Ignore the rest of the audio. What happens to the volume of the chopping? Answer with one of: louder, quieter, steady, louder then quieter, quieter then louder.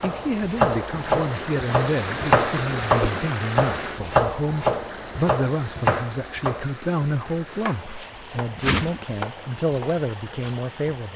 quieter.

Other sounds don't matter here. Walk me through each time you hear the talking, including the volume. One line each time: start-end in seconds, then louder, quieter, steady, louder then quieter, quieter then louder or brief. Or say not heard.
0.0-11.1 steady.